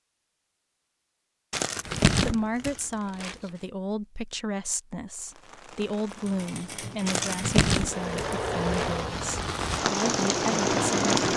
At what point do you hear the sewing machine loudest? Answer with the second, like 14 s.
11 s.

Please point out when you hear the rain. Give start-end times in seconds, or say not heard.
5.2-11.3.